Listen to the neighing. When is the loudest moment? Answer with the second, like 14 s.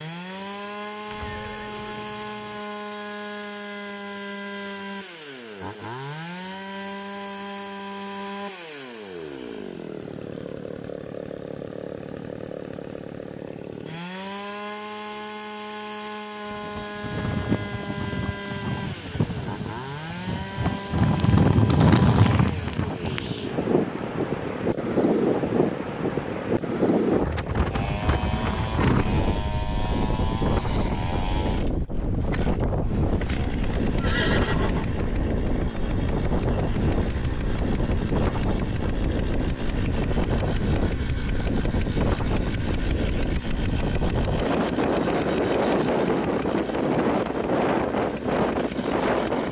34 s.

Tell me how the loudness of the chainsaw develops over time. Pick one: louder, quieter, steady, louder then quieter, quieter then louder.
steady.